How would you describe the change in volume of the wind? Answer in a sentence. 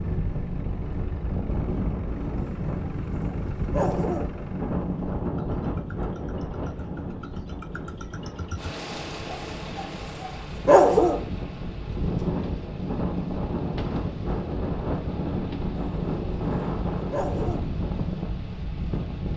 The loudness of the wind goes down, then up.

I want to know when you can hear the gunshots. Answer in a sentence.
You can't hear the gunshots here.